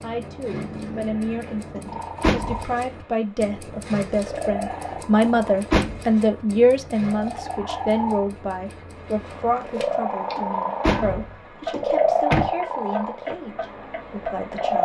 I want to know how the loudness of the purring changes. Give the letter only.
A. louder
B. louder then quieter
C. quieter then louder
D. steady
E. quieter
A.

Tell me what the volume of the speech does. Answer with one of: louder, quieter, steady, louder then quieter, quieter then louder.
louder then quieter.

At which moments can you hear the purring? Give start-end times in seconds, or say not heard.
0.0-14.8.